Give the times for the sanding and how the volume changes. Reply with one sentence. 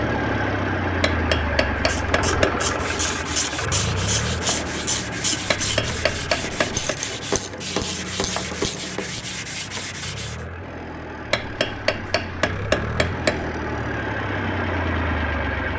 The sanding can be heard from 2.6 to 10.4 s, at a steady volume.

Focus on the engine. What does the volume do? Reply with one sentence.
The loudness of the engine goes down, then up.